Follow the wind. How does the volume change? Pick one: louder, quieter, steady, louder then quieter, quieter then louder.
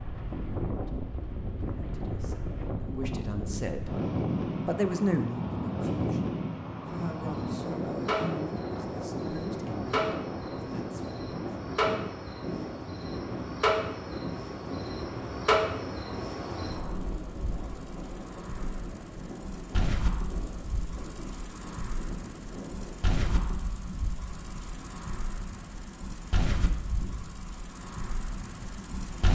quieter.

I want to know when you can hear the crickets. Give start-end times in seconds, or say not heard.
6.8-29.3.